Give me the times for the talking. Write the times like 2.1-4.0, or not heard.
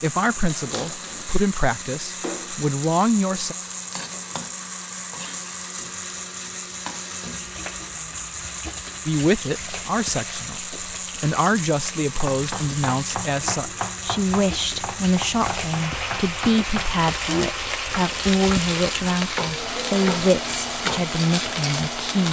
0.0-3.5, 9.1-22.2.